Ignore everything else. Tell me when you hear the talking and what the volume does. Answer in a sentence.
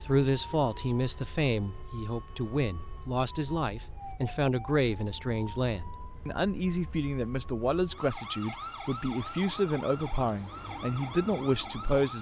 The talking can be heard from 0.0 to 12.1 s, at a steady volume.